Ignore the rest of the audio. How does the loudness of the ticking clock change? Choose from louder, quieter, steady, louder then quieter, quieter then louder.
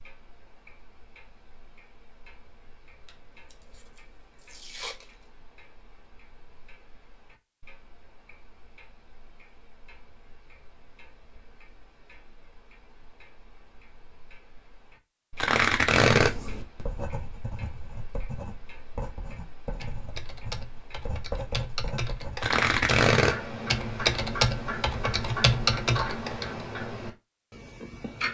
louder.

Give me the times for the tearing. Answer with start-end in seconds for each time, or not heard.
3.0-5.0, 15.3-16.4, 22.4-23.4.